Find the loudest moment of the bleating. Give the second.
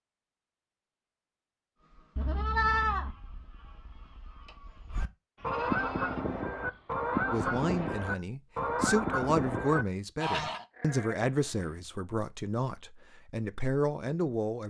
3 s.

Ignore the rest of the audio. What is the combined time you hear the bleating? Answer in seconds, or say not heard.
5 s.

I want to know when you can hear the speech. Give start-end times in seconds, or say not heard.
7.3-14.6.